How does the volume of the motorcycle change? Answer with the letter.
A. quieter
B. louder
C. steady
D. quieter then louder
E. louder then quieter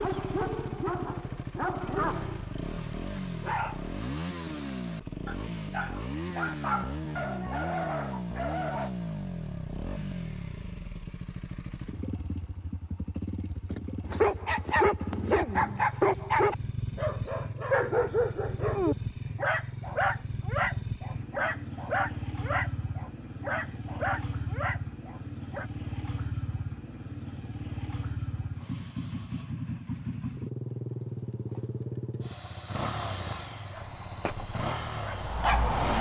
C.